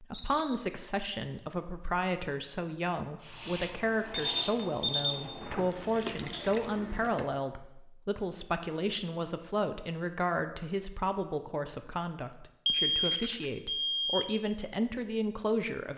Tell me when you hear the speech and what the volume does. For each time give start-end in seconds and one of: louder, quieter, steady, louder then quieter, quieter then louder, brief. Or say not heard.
0.0-15.9 steady.